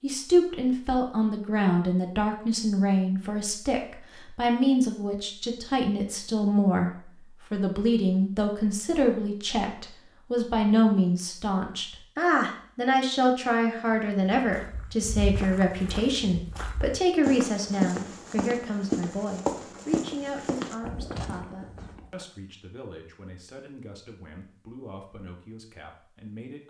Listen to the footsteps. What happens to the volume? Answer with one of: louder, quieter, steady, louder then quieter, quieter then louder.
louder then quieter.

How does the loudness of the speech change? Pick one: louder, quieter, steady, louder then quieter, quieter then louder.
quieter.